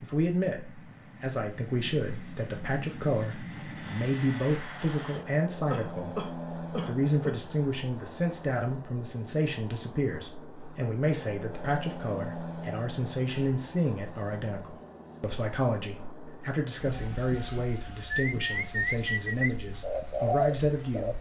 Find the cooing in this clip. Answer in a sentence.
You can hear the cooing from 18.1 to 21.1 s.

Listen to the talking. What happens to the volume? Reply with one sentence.
The loudness of the talking stays about the same.